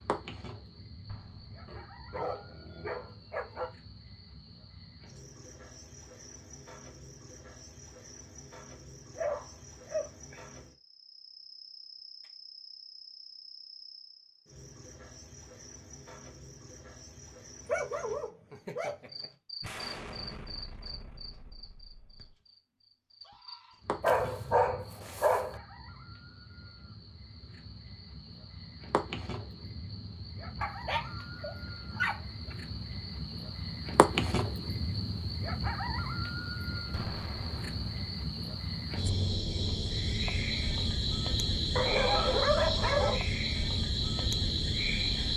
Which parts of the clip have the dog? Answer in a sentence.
The dog can be heard from 1.6 to 3.7 s, from 9.2 to 10.4 s, from 17.6 to 19.3 s, from 24.0 to 25.6 s, from 30.6 to 32.5 s and from 41.8 to 43.2 s.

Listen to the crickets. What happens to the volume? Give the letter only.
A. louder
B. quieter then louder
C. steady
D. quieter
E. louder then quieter
A.